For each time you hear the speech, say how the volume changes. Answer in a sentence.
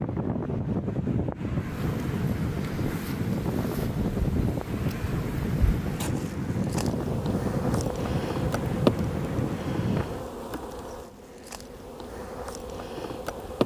The speech can't be heard in this clip.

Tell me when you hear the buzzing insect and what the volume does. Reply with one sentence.
You can hear the buzzing insect from 1.6 to 13.6 s, getting louder then quieter.